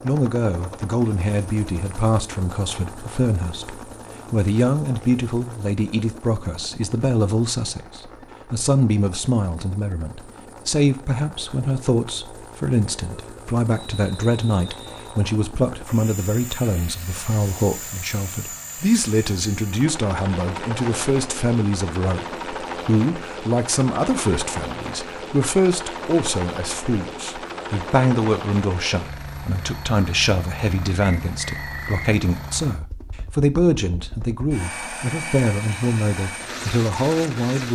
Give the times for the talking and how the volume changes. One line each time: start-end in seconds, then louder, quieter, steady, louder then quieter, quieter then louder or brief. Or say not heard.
0.0-37.7 steady.